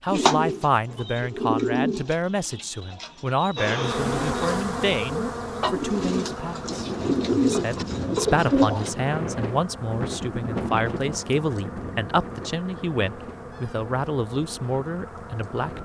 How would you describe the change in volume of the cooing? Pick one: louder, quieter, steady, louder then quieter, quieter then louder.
quieter then louder.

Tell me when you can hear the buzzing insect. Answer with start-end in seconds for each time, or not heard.
3.5-15.7.